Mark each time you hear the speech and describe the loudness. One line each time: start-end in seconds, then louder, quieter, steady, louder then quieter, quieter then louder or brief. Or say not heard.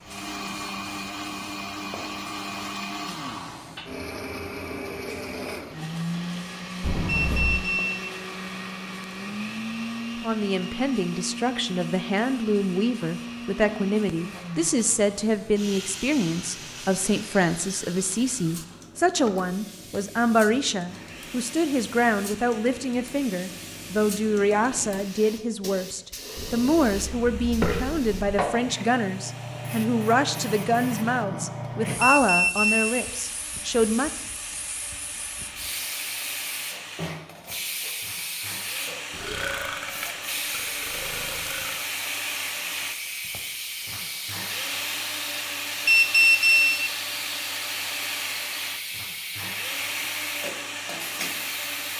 10.2-34.1 steady.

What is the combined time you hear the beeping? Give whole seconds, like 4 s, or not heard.
3 s.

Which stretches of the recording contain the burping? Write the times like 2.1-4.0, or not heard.
6.8-7.7, 26.4-28.4, 39.1-41.8.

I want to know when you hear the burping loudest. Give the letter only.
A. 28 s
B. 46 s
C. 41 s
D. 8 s
A.